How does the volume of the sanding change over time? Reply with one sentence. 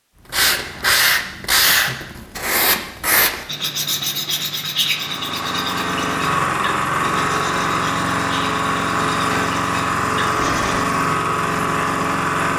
The volume of the sanding goes down.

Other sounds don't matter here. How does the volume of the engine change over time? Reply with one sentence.
The loudness of the engine stays about the same.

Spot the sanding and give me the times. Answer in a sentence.
The sanding can be heard from 0.3 to 10.9 s.